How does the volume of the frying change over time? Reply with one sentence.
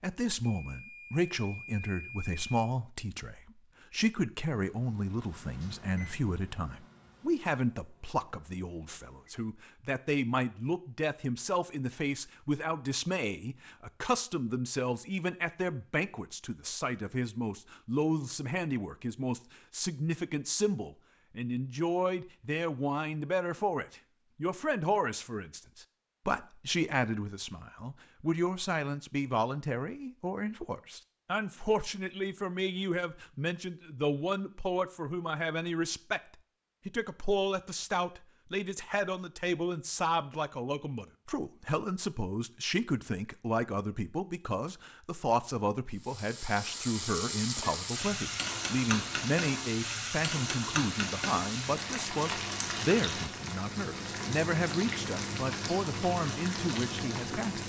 The volume of the frying stays about the same.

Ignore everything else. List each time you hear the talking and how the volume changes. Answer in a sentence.
You can hear the talking from 0.0 to 36.2 s, at a steady volume; and from 36.9 to 57.6 s, at a steady volume.